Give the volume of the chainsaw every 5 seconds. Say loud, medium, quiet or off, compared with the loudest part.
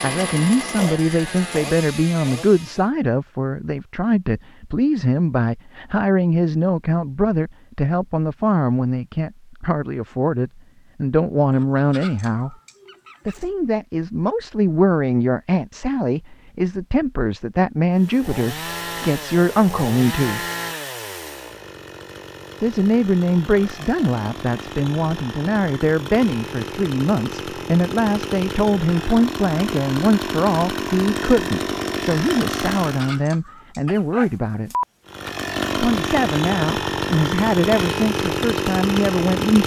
medium, off, off, medium, medium, medium, loud, loud.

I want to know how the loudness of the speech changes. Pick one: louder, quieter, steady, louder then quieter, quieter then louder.
steady.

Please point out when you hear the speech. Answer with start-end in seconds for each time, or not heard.
0.0-12.6, 13.2-20.4, 22.6-34.7, 35.7-39.6.